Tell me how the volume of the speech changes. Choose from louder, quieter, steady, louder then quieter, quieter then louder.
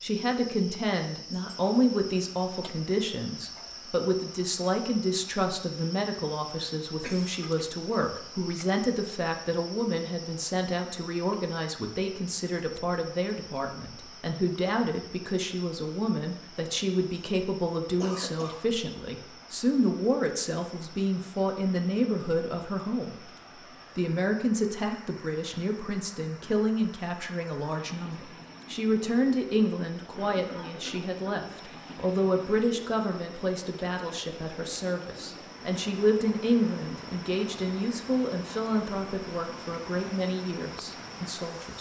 steady.